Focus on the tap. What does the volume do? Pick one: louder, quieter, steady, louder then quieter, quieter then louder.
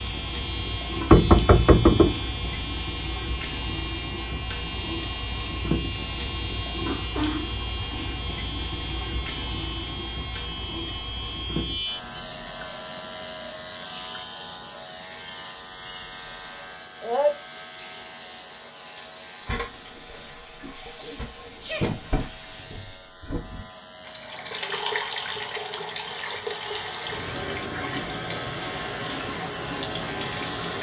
quieter then louder.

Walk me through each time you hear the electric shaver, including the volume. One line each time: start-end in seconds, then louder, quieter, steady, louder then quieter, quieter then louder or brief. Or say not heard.
0.0-30.7 quieter then louder.